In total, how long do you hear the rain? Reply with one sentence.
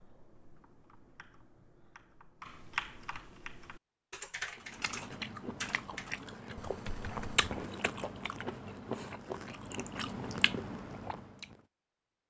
You can't hear the rain here.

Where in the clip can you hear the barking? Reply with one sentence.
The barking can't be heard in this clip.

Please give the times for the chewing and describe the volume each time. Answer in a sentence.
The chewing can be heard from 4.5 to 11.6 s, at a steady volume.